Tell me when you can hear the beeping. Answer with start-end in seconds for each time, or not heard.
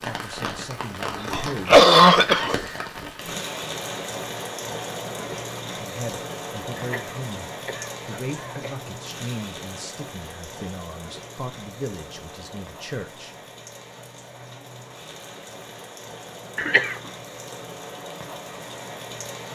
not heard.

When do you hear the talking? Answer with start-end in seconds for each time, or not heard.
0.0-2.9, 5.8-13.3.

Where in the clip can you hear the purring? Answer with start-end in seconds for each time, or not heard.
not heard.